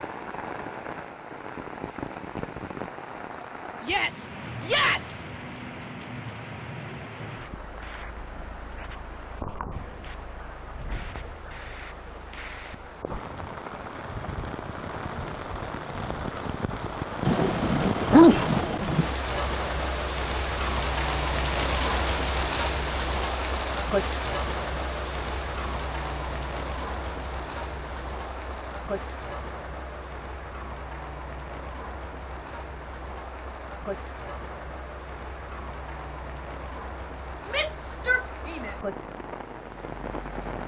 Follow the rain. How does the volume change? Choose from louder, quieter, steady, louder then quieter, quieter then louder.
louder then quieter.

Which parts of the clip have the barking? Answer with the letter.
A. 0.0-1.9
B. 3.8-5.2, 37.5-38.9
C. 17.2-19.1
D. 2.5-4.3
C.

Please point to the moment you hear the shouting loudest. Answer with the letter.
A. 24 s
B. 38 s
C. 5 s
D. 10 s
C.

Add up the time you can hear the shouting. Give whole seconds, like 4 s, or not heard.
3 s.